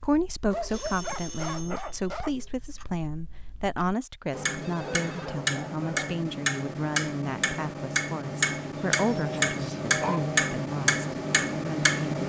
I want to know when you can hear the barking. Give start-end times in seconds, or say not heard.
0.5-2.5, 4.3-6.2, 9.2-10.2.